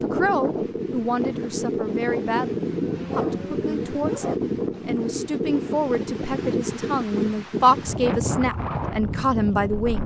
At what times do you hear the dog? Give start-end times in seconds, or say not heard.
2.4-4.3.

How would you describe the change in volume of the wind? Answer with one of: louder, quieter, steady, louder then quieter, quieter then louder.
steady.